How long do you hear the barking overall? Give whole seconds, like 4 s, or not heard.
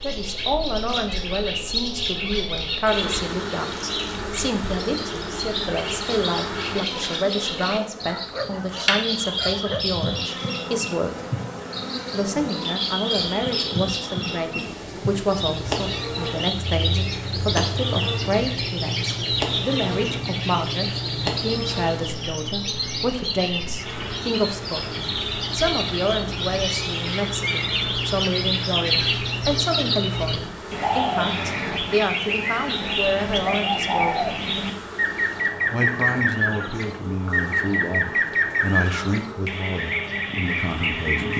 2 s.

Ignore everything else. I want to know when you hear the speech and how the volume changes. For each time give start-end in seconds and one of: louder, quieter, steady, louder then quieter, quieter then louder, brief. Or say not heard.
0.0-11.2 steady
12.1-34.2 steady
35.7-41.3 steady.